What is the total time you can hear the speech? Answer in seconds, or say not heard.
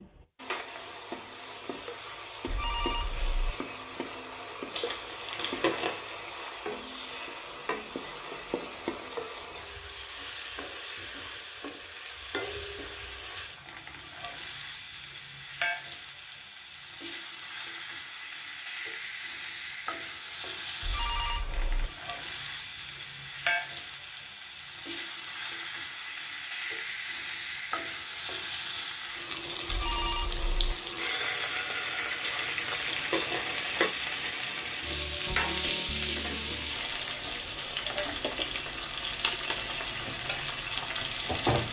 not heard.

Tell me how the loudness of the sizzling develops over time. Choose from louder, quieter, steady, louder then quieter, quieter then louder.
louder.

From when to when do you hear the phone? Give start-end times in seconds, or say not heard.
2.5-3.5, 20.8-21.9, 29.6-30.8.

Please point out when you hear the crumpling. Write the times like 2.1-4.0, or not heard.
4.7-6.0, 32.2-33.9.